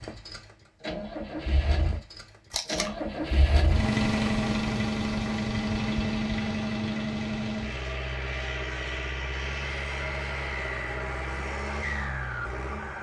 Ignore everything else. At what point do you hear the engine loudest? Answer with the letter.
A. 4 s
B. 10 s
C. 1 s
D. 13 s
A.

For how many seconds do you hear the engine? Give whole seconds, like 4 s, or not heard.
13 s.